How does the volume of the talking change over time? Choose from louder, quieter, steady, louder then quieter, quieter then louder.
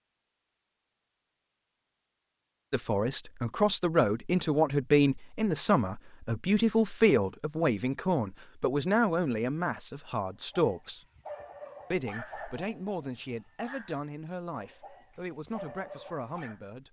quieter.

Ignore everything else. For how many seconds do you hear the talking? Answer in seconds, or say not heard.
13 s.